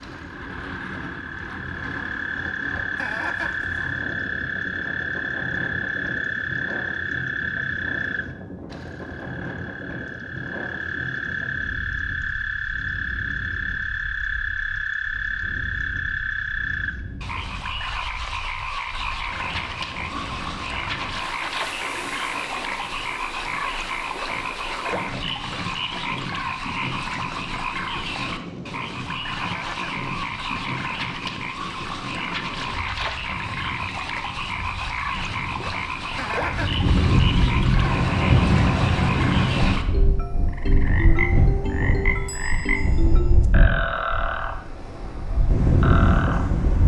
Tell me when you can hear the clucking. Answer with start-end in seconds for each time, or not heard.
3.0-3.6, 21.1-21.6, 29.4-30.0, 36.1-36.8.